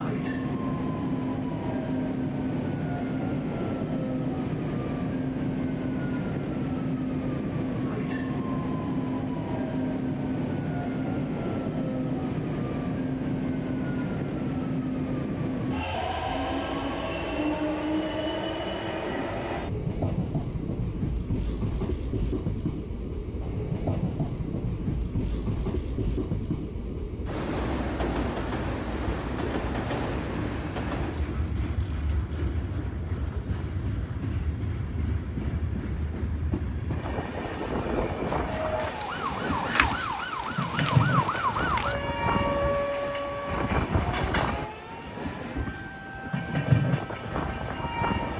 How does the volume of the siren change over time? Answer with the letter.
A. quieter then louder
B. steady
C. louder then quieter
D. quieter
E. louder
D.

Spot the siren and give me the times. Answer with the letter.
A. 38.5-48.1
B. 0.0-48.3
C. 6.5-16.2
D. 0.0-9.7
A.